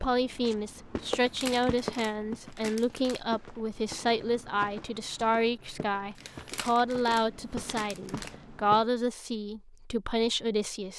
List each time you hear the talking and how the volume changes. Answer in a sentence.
You can hear the talking from 0.0 to 10.9 s, at a steady volume.